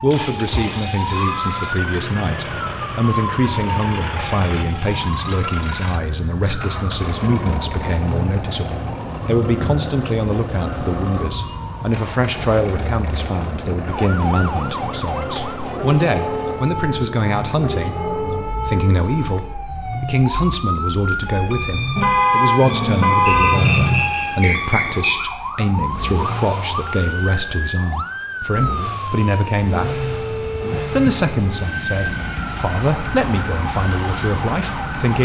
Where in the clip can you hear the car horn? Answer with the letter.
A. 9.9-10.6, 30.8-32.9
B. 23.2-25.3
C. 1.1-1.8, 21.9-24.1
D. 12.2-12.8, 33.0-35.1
C.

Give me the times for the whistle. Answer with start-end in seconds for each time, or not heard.
23.2-25.3.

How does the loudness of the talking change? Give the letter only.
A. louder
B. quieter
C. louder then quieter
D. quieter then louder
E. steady
E.